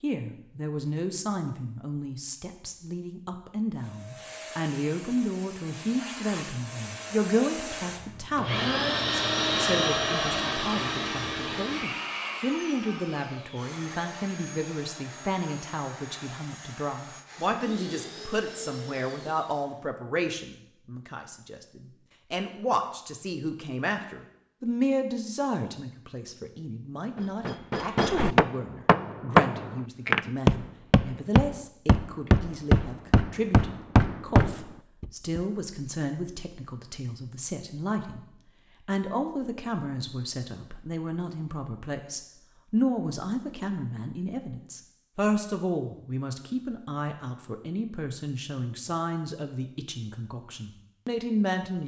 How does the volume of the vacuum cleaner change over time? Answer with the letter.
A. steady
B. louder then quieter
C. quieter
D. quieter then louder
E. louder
B.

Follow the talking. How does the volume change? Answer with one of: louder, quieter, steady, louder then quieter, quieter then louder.
steady.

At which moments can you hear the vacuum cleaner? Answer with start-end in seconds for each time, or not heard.
3.8-19.9.